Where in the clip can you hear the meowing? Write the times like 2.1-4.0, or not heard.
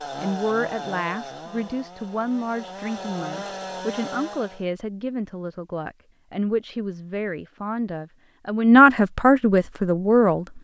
not heard.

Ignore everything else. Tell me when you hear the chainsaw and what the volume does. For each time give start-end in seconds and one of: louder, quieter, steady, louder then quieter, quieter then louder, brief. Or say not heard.
0.0-4.7 quieter then louder.